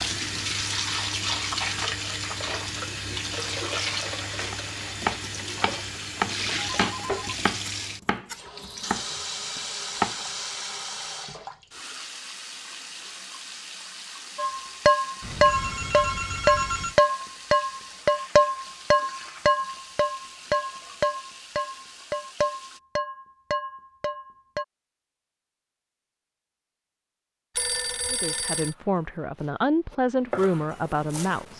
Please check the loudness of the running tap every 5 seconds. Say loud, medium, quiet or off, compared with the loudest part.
loud, loud, medium, quiet, quiet, off, off.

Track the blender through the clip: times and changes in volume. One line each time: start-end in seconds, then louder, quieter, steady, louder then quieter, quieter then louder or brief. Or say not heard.
not heard.